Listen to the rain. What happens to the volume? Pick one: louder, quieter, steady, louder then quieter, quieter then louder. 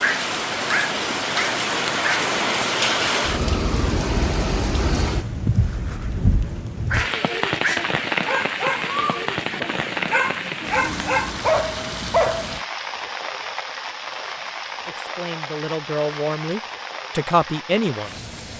quieter.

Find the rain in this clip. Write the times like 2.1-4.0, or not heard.
0.0-18.5.